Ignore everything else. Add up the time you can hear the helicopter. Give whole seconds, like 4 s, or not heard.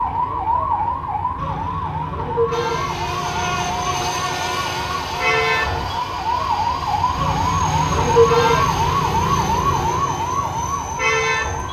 9 s.